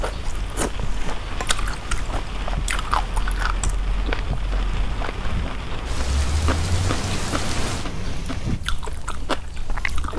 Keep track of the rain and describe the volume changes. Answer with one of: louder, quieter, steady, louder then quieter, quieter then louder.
louder.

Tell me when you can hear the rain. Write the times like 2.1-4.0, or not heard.
0.0-8.6.